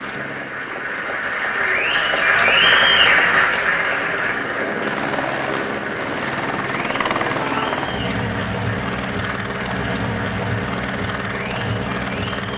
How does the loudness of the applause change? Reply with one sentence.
The volume of the applause goes down.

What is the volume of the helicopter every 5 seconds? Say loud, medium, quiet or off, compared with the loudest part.
medium, loud, loud.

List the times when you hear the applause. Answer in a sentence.
The applause can be heard from 0.0 to 12.5 s.